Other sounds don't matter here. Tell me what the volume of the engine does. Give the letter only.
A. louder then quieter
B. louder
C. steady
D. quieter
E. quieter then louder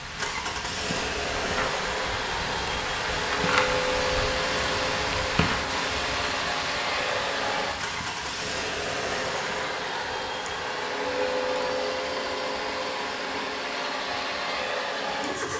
C.